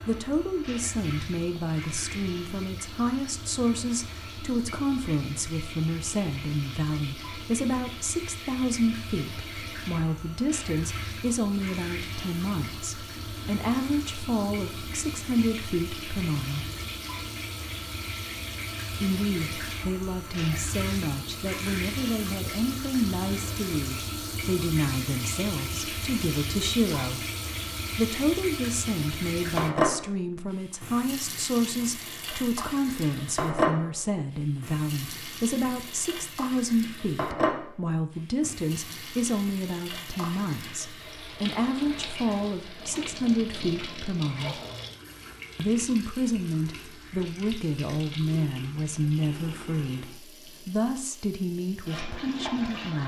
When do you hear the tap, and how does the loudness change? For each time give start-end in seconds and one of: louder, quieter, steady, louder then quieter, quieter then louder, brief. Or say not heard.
0.0-53.0 louder then quieter.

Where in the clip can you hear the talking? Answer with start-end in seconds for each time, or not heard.
0.1-16.7, 19.0-27.2, 27.9-44.6, 45.5-53.0.